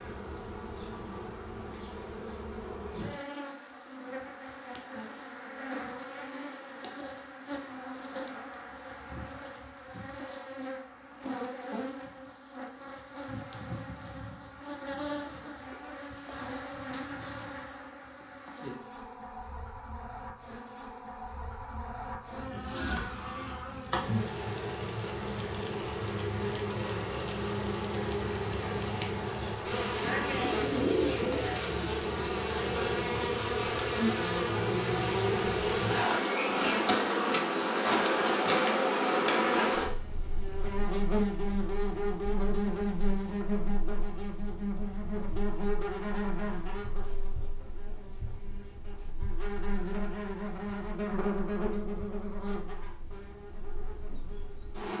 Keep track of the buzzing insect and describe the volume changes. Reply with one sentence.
The volume of the buzzing insect goes up, then down.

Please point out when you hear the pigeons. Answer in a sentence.
The pigeons can be heard from 30.0 to 31.7 s.